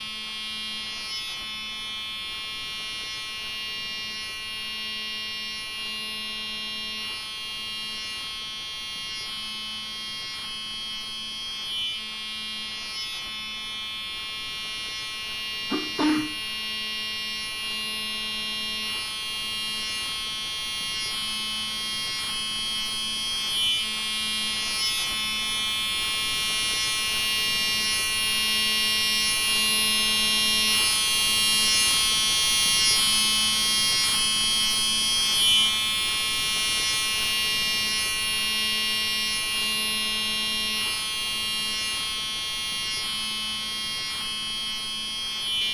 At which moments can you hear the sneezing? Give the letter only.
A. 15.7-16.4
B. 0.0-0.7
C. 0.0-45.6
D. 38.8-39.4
A.